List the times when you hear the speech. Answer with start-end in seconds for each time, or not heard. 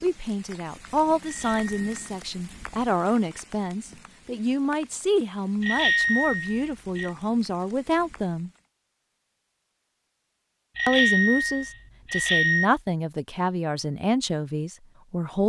0.0-8.5, 10.8-15.4.